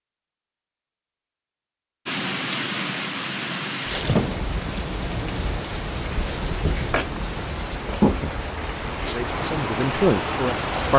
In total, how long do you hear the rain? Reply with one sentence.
You can hear the rain for 9 seconds altogether.